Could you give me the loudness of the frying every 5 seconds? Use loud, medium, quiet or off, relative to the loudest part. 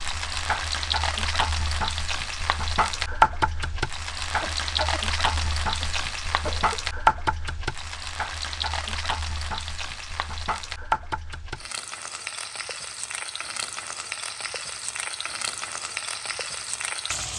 loud, loud, medium, medium.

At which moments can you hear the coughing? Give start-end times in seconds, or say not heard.
4.4-6.8.